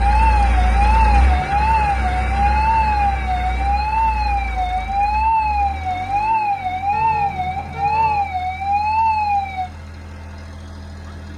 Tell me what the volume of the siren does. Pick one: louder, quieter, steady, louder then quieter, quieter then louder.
steady.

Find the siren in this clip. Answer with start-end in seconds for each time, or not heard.
0.0-9.7.